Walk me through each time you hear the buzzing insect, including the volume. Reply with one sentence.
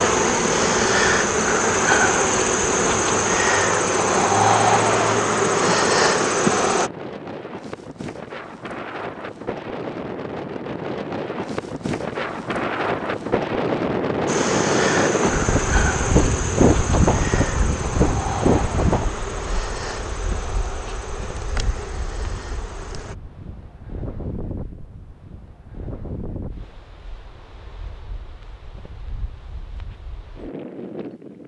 You can hear the buzzing insect from 0.0 to 6.9 s, at a steady volume; and from 14.2 to 23.1 s, getting quieter.